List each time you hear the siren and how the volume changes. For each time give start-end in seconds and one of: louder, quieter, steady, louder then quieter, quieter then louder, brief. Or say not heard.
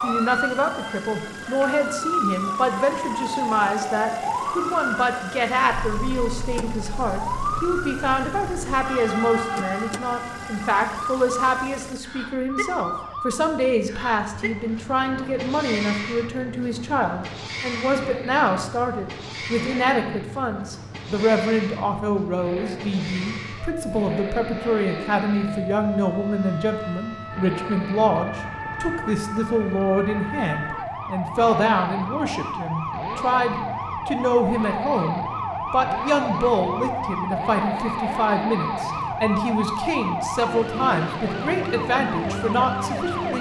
0.0-43.3 quieter then louder.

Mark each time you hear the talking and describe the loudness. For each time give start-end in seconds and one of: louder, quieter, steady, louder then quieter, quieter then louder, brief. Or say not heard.
0.0-43.3 steady.